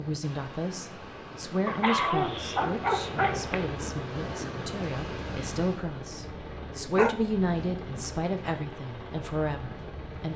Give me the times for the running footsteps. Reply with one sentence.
The running footsteps can't be heard in this clip.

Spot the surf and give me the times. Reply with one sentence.
The surf can be heard from 0.0 to 5.8 s.